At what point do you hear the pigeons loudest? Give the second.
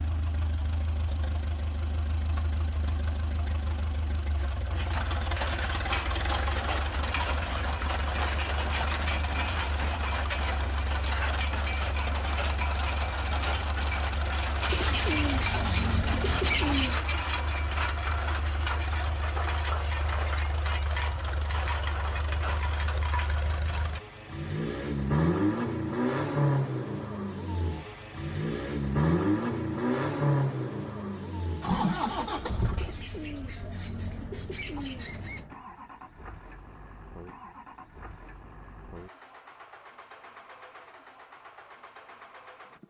17 s.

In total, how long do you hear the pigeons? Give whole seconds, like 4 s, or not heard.
5 s.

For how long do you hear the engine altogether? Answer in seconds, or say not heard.
43 s.